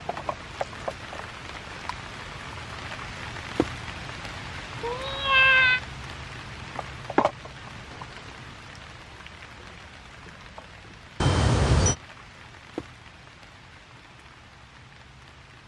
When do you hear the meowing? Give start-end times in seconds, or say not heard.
4.8-5.8, 11.2-11.9.